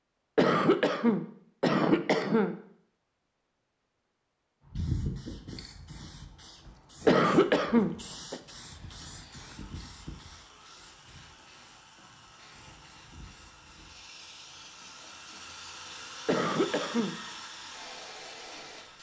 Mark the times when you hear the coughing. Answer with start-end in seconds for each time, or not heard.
0.3-2.5, 7.0-8.4, 16.2-17.1.